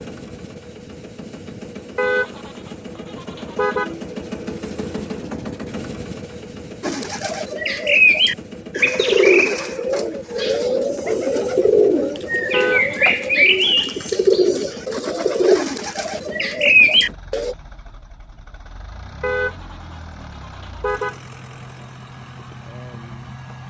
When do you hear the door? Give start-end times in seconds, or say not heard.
not heard.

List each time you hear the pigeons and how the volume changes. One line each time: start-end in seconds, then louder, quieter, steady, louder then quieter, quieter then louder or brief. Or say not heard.
6.8-17.6 steady.